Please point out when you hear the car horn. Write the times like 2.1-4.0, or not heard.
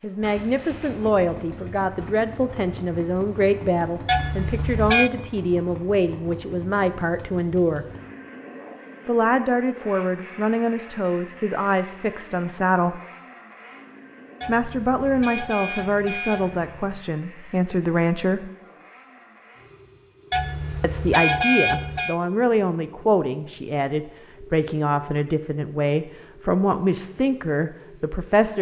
4.0-5.1, 14.4-17.1, 20.3-22.1.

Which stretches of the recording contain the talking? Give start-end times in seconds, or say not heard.
0.0-7.8, 9.1-13.0, 14.4-18.5, 20.8-28.5.